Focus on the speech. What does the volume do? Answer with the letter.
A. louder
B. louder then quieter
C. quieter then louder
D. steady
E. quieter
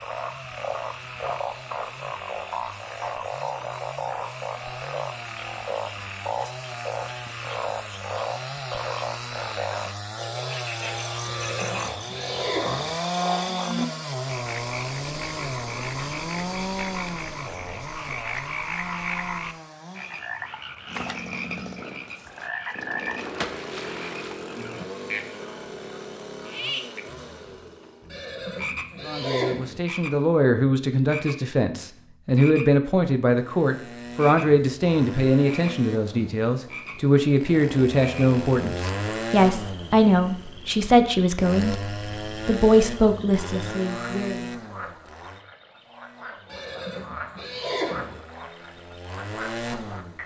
D.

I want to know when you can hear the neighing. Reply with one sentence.
You can hear the neighing from 11.2 to 12.9 s, from 28.1 to 29.8 s and from 46.5 to 48.2 s.